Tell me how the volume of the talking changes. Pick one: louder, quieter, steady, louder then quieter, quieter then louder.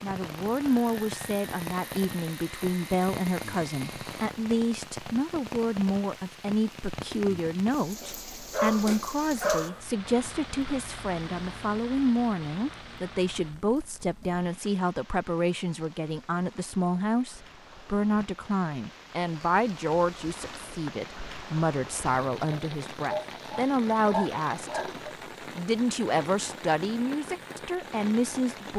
steady.